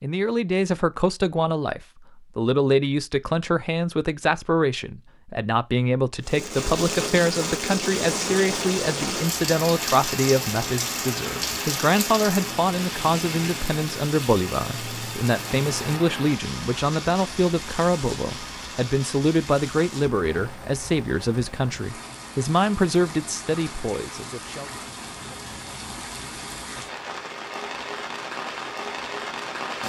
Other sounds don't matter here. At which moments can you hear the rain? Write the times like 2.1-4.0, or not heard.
6.2-29.8.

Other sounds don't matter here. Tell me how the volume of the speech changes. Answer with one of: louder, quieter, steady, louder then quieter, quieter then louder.
steady.